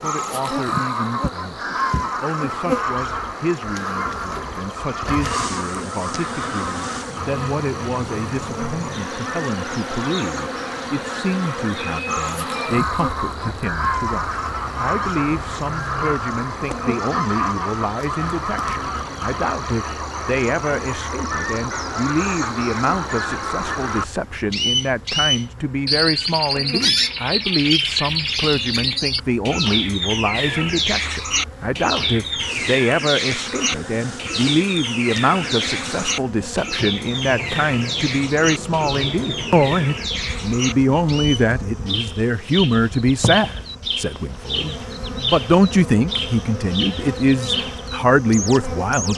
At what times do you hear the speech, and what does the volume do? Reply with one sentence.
The speech can be heard from 0.0 to 49.1 s, getting louder.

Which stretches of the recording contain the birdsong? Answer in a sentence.
The birdsong can be heard from 0.0 to 49.1 s.